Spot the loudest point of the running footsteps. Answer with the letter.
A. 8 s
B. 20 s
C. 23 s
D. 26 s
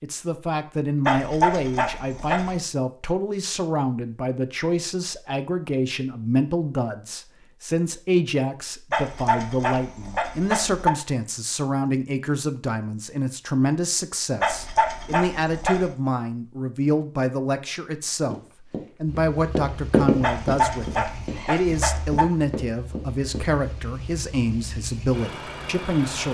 B.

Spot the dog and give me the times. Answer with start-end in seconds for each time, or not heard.
1.1-2.6, 8.9-10.9, 14.4-15.9, 20.2-22.2.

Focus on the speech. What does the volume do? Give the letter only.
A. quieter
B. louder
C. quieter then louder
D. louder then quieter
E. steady
E.